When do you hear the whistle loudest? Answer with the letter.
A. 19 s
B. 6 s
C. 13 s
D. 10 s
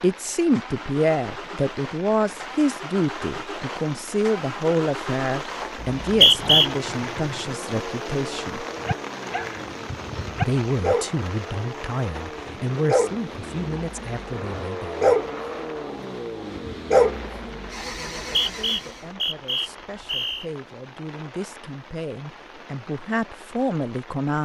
B.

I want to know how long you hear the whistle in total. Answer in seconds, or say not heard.
3 s.